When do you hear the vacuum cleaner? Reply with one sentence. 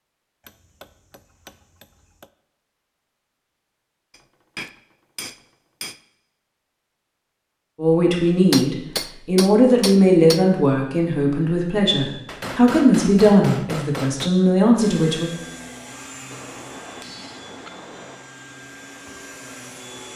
You can hear the vacuum cleaner from 14.8 to 20.1 s.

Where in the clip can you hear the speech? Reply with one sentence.
The speech can be heard from 7.8 to 15.3 s.